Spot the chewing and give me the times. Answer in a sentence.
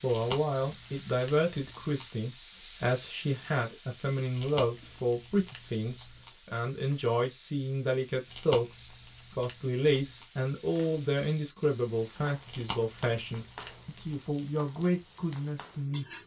The chewing can be heard from 0.1 to 2.1 s, from 4.3 to 6.3 s, from 8.3 to 10.2 s and from 12.4 to 14.2 s.